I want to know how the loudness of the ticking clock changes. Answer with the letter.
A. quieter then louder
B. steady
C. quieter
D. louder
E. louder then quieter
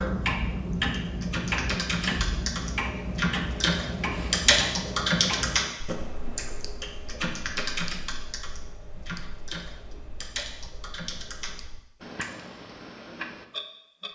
A.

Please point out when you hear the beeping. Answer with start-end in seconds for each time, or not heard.
not heard.